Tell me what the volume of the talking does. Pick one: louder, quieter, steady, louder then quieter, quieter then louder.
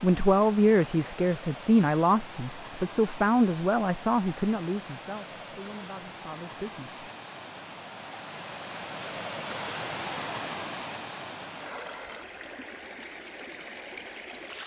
quieter.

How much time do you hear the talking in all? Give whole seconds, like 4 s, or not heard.
7 s.